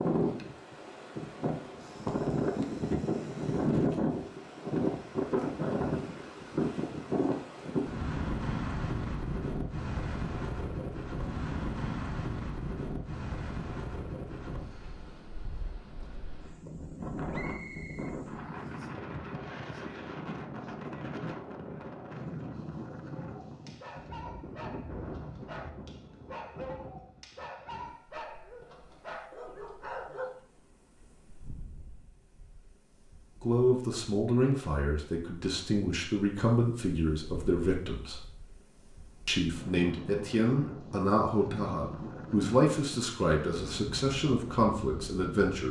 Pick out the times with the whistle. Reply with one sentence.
You can hear the whistle from 17.3 to 18.9 s.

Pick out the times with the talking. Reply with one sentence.
You can hear the talking from 33.4 to 38.2 s and from 39.2 to 45.6 s.